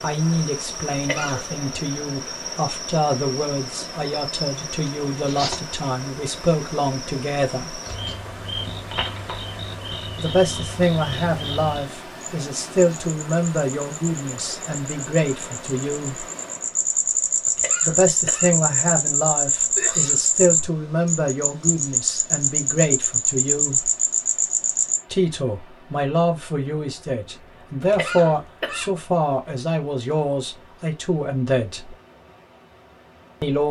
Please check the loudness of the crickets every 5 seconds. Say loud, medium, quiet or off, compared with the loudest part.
quiet, quiet, quiet, loud, loud, off, off.